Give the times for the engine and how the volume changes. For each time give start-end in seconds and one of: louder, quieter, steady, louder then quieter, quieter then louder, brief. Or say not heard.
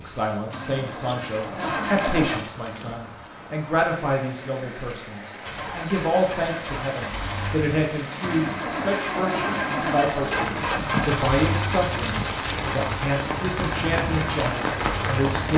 0.0-2.4 brief
5.5-15.3 louder then quieter.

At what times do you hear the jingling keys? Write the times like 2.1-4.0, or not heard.
1.1-3.0, 10.7-12.8.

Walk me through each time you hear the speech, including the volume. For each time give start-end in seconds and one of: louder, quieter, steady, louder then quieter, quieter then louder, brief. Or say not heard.
0.0-15.5 steady.